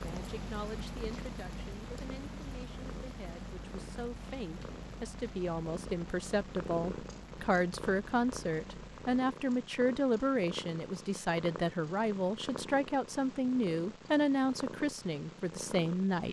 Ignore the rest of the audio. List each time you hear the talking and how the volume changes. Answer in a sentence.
You can hear the talking from 0.0 to 16.2 s, getting louder.